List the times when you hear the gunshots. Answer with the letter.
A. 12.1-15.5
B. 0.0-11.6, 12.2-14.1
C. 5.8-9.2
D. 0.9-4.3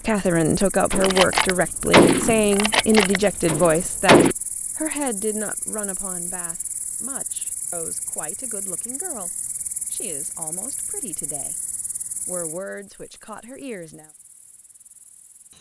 D.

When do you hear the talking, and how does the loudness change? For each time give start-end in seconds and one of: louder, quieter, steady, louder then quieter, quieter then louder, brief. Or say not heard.
0.0-11.6 quieter
12.2-14.1 brief.